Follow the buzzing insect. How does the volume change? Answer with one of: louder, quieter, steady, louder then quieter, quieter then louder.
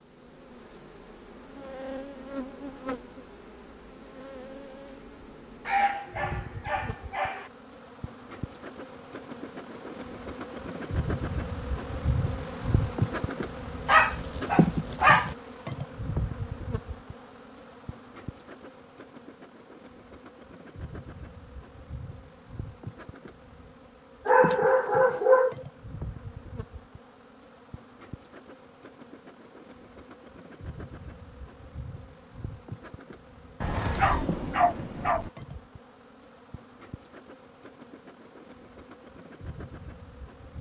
louder then quieter.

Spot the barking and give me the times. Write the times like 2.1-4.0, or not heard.
5.7-7.5, 13.8-15.3, 24.2-25.6, 33.6-35.3.